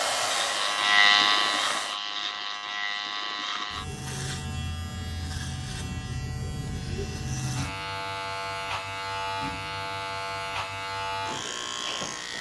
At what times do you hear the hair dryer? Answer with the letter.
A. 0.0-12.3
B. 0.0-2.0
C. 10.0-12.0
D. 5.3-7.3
B.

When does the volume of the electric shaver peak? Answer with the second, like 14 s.
1 s.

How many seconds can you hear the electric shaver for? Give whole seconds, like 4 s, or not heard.
12 s.